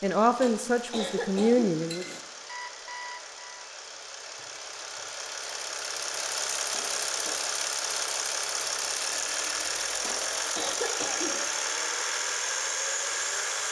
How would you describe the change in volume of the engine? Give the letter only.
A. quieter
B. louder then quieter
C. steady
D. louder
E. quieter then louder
D.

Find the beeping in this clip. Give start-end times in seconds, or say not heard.
2.5-3.7, 8.8-9.9.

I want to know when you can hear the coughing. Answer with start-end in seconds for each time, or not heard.
0.4-2.2, 6.7-7.4, 10.0-11.4.